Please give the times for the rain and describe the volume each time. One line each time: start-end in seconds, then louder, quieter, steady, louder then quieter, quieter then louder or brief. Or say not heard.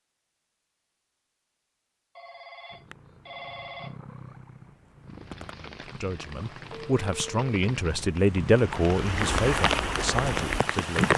5.1-11.1 louder.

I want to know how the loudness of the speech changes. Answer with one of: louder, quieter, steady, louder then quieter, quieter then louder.
louder then quieter.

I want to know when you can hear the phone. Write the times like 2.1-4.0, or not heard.
2.1-4.0, 6.7-7.5.